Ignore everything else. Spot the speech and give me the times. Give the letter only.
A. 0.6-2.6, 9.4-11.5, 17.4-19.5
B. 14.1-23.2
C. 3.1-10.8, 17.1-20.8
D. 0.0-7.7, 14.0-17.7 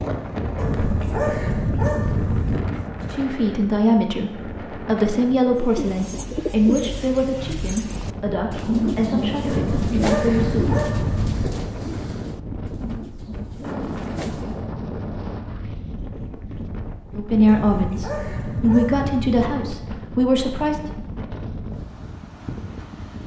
C.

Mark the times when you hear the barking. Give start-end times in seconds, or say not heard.
0.6-2.6, 9.4-11.5, 17.4-19.5.